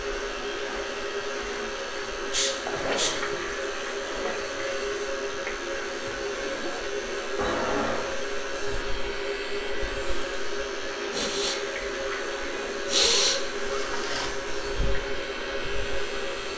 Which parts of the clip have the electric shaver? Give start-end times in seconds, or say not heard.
0.0-16.5.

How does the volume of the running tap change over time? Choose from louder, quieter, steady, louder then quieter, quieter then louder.
steady.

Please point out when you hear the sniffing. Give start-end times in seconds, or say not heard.
2.3-3.1, 7.3-8.2, 11.1-11.6, 12.8-13.4.